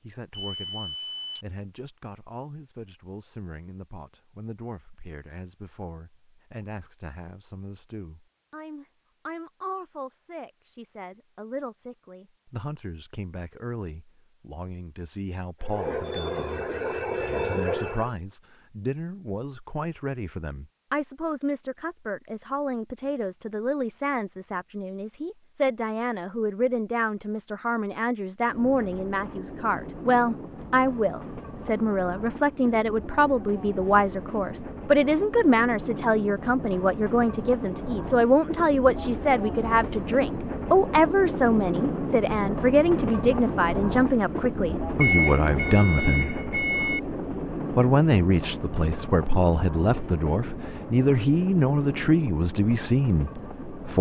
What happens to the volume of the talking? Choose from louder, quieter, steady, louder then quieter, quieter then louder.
louder.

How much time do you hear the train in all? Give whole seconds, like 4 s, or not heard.
28 s.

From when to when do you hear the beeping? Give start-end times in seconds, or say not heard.
0.3-1.4, 45.0-47.0.